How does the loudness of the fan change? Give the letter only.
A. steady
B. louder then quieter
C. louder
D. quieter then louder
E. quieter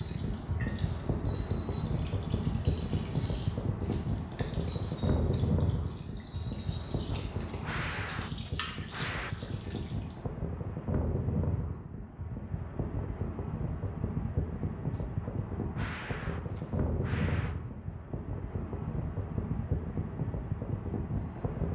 A.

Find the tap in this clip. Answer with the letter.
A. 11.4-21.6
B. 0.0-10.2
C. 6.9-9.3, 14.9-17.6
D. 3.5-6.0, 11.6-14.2
B.